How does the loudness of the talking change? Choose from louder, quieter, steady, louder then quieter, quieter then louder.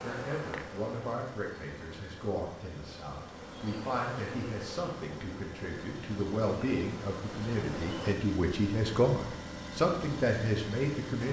louder.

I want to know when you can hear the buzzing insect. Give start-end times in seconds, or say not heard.
0.0-8.2.